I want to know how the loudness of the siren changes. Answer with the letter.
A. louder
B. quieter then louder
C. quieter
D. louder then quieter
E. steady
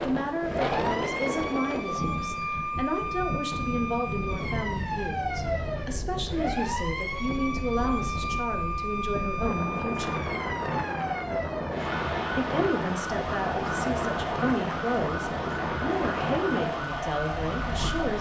E.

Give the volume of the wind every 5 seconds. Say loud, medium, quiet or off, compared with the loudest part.
loud, medium, loud, loud.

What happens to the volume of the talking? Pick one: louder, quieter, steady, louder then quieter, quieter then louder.
steady.